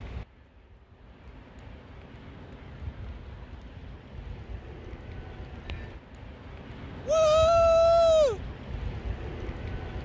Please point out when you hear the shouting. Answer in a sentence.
The shouting can be heard from 7.0 to 8.4 s.